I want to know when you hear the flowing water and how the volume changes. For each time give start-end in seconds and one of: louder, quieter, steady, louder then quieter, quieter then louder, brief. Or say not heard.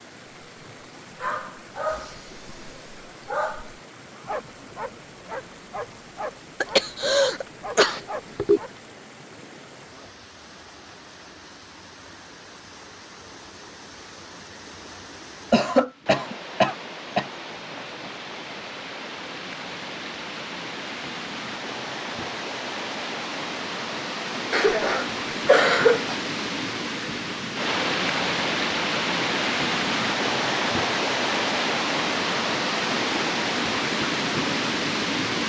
0.0-35.4 louder.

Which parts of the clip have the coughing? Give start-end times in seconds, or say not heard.
6.6-8.6, 15.5-17.2, 24.5-26.1.